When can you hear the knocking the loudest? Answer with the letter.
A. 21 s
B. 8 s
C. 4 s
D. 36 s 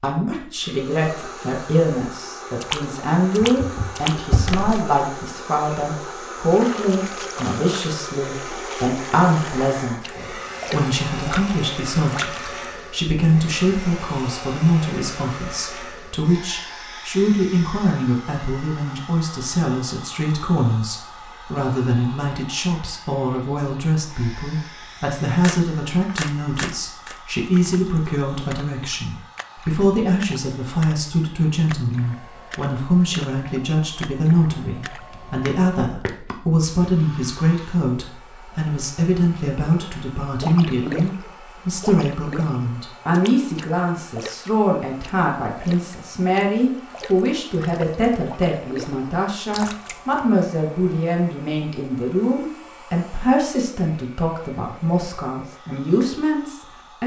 C.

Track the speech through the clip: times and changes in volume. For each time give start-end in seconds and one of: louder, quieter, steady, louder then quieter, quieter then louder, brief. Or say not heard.
0.0-57.0 steady.